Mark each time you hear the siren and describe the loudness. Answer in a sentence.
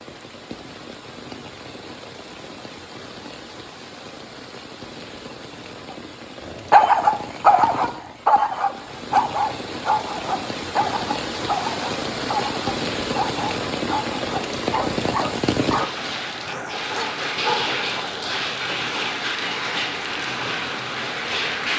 You can't hear the siren here.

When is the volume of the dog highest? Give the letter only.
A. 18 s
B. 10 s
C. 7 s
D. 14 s
C.